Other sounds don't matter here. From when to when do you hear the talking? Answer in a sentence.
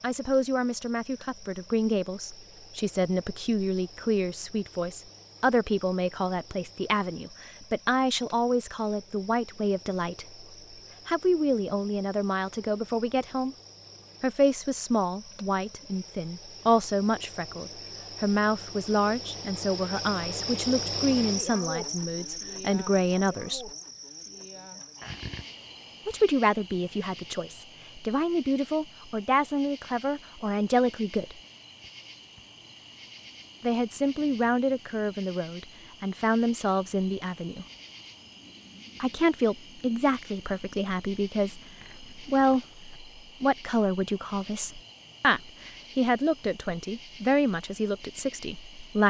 The talking can be heard from 0.0 to 10.4 s, from 11.1 to 13.6 s, from 14.2 to 23.7 s, from 26.1 to 31.4 s, from 33.6 to 37.6 s and from 39.0 to 49.0 s.